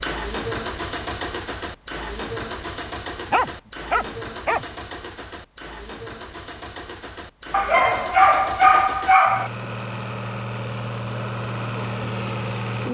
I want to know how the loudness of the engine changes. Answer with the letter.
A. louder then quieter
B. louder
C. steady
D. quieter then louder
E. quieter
D.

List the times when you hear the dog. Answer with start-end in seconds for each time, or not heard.
3.3-4.7, 7.5-9.5.